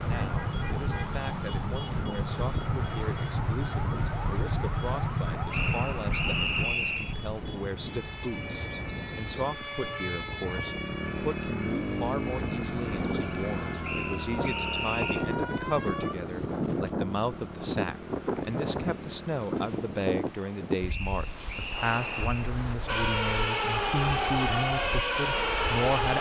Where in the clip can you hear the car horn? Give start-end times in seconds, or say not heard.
not heard.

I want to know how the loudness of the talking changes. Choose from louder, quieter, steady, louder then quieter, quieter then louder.
louder.